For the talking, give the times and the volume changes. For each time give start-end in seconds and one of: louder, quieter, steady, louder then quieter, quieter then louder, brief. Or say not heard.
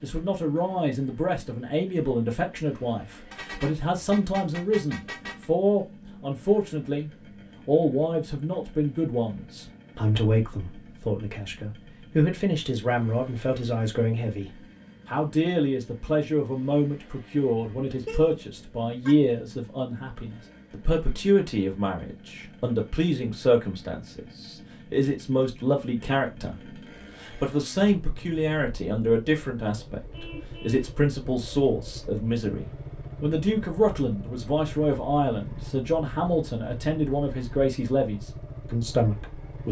0.0-39.6 steady.